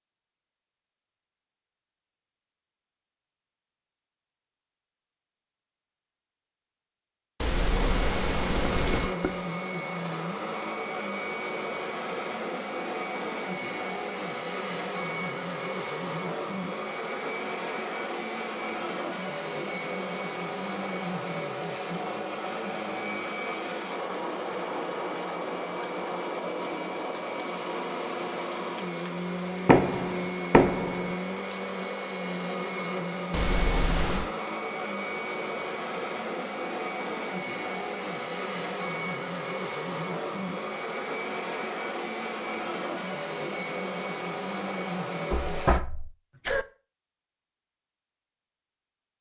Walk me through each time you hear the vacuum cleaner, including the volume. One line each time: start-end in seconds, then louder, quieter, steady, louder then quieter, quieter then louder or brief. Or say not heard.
7.7-45.8 steady.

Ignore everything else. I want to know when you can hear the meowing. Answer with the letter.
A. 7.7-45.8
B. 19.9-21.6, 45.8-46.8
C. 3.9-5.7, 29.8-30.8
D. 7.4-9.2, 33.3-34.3
D.